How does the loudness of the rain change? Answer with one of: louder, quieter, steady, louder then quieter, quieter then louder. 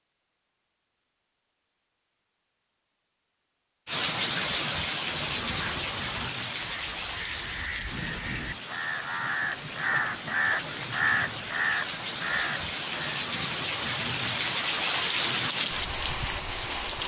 quieter then louder.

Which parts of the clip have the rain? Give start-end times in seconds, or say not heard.
3.9-17.0.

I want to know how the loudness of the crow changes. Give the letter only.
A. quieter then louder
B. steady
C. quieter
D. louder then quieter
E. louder
E.